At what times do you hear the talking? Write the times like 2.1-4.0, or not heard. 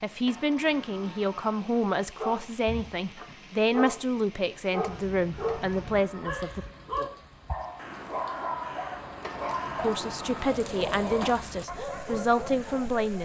0.0-6.7, 9.8-13.2.